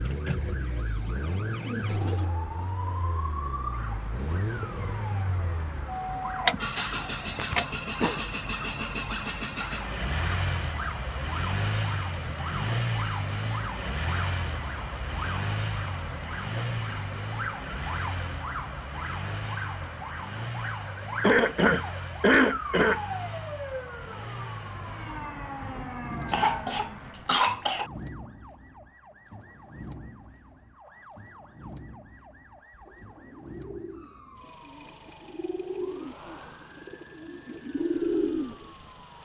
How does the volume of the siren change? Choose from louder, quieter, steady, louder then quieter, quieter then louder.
quieter.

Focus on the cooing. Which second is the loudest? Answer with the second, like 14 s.
38 s.